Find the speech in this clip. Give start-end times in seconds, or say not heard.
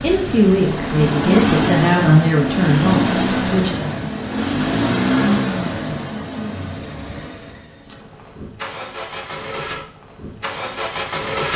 0.0-3.8.